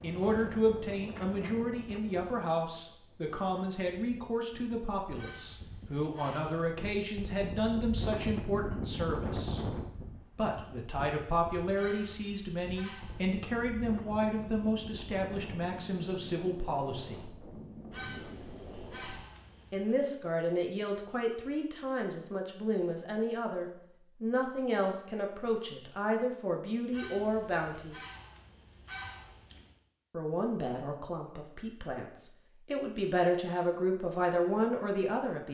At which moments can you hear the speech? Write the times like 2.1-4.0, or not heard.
0.0-9.7, 10.3-17.2, 19.7-27.9, 30.1-35.4.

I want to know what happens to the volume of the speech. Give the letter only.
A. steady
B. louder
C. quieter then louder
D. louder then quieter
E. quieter
A.